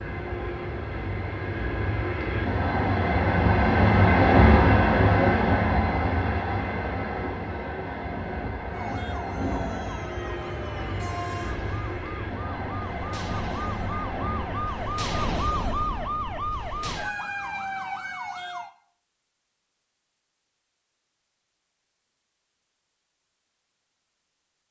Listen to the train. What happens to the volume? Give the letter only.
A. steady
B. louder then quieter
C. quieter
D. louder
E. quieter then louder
B.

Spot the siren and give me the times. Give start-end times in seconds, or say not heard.
8.7-18.7.